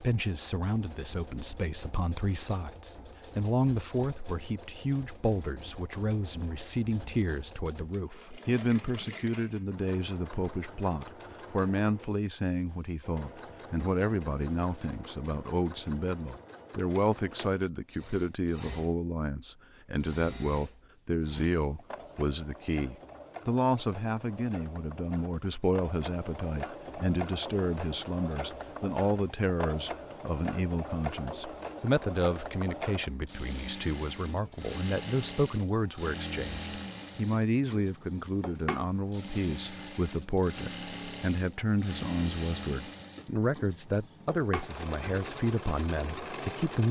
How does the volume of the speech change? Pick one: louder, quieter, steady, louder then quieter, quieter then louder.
steady.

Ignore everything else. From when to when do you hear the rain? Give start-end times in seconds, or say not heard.
not heard.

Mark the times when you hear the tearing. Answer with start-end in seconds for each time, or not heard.
not heard.